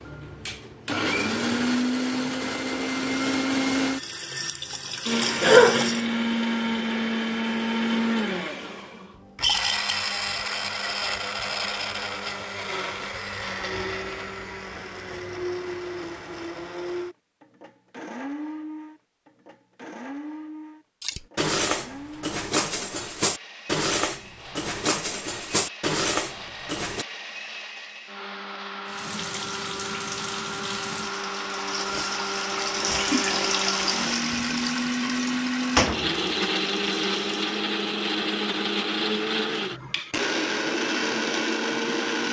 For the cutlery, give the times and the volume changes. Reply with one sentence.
The cutlery can be heard from 21.0 to 27.1 s, at a steady volume.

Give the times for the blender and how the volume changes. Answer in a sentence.
You can hear the blender from 0.0 to 42.2 s, getting quieter then louder.